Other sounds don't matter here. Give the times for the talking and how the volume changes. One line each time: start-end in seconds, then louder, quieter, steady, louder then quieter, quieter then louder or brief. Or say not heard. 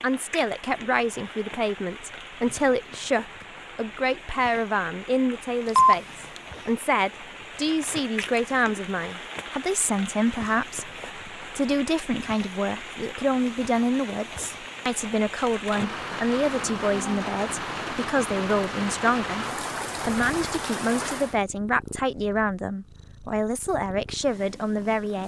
0.0-25.2 steady.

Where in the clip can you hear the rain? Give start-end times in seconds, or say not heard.
0.0-21.4.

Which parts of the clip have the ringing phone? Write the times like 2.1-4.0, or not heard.
5.7-6.4.